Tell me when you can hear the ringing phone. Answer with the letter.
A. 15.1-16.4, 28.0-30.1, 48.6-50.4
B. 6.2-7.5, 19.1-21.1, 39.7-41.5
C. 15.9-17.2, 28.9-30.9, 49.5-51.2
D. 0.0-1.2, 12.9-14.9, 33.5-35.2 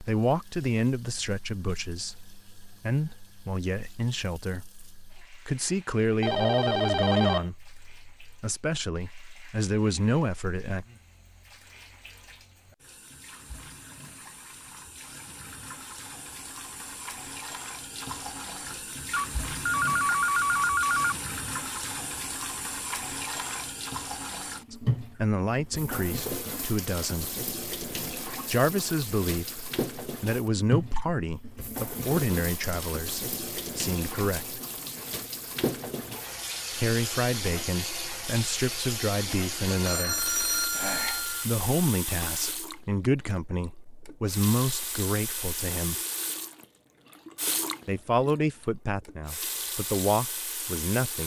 B.